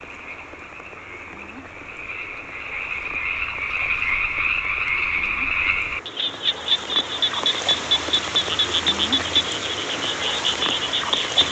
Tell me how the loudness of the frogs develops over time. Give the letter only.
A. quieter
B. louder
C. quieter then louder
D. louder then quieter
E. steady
B.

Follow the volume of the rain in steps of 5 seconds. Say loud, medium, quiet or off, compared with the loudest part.
quiet, loud, loud.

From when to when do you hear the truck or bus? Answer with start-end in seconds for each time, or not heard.
not heard.